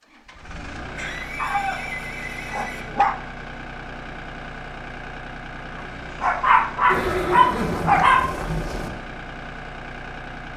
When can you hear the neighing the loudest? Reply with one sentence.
The loudest moment of the neighing is at 7 seconds.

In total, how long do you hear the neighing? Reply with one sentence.
The neighing can be heard for 4 seconds in total.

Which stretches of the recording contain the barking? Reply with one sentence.
You can hear the barking from 1.4 to 3.3 s and from 5.8 to 8.3 s.